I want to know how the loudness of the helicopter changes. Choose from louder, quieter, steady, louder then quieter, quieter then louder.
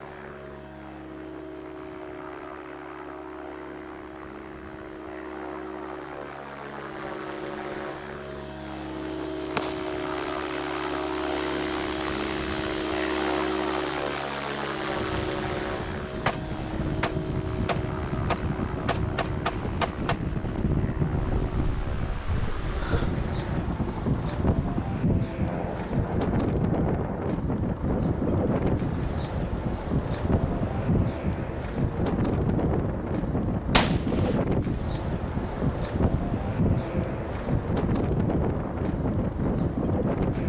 louder then quieter.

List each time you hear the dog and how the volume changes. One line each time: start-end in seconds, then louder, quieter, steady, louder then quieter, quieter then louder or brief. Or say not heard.
not heard.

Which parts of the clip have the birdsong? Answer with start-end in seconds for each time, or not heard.
not heard.